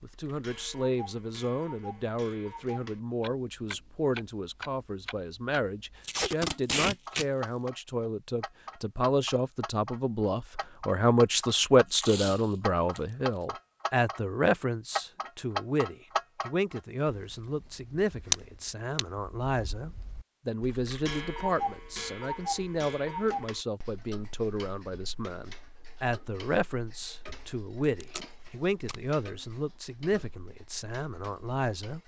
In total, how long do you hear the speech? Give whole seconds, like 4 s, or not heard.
32 s.